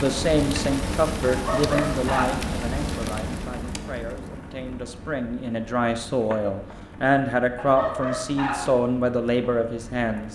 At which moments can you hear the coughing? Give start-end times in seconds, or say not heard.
not heard.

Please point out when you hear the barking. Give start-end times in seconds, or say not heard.
1.2-2.5, 7.5-8.8.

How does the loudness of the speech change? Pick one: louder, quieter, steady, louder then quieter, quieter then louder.
quieter then louder.